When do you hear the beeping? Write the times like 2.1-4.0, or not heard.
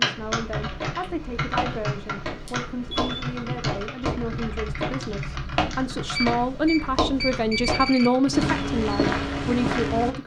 2.5-3.3, 6.1-8.1.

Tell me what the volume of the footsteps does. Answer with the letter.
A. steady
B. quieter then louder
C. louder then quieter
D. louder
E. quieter
D.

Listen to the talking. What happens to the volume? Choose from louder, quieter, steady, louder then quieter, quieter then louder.
louder.